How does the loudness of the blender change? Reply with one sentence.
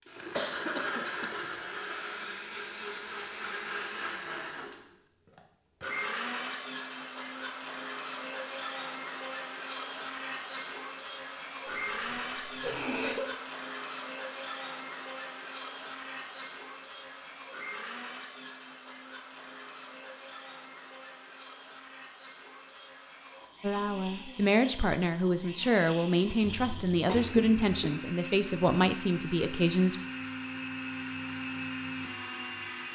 The loudness of the blender goes down, then up.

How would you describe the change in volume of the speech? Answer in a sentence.
The volume of the speech stays about the same.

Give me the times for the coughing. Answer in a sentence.
You can hear the coughing from 0.3 to 1.5 s, from 11.7 to 13.3 s and from 26.4 to 27.9 s.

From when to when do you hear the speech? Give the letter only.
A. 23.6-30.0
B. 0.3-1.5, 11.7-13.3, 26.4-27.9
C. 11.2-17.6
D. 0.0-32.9
A.